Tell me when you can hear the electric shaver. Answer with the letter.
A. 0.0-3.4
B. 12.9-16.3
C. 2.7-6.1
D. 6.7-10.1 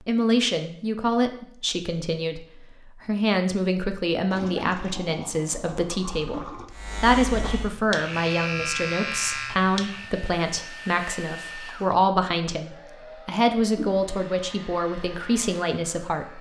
D.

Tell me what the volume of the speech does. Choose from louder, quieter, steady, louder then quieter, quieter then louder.
steady.